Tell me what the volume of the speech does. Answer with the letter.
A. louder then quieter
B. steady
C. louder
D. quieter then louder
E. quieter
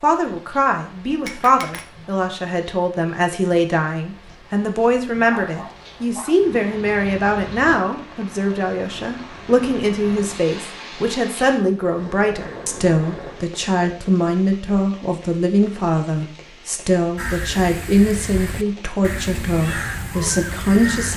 B.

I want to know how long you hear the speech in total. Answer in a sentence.
You can hear the speech for 21 seconds altogether.